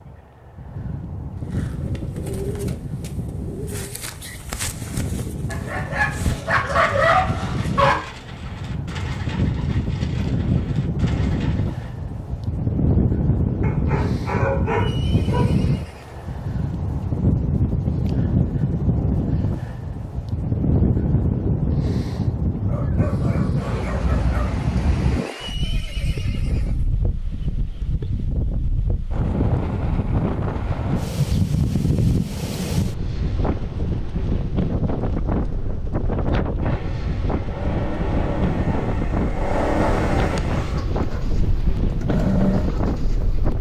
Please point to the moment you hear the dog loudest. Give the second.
7 s.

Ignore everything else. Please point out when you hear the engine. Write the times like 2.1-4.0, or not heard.
36.6-43.5.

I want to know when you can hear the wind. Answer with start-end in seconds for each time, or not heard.
0.0-43.5.